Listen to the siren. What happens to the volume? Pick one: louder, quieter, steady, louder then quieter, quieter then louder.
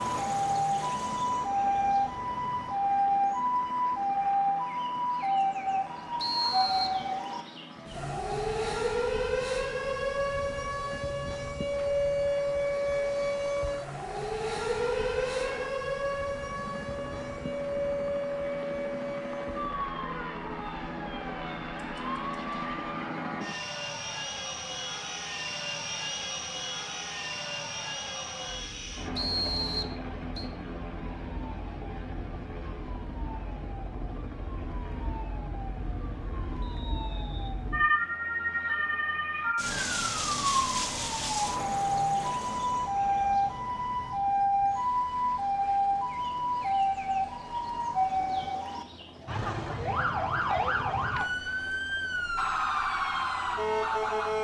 quieter then louder.